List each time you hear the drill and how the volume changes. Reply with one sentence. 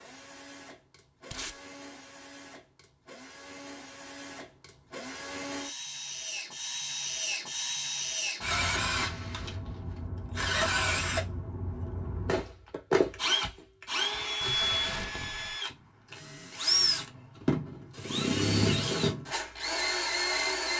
You can hear the drill from 0.0 to 20.7 s, getting louder.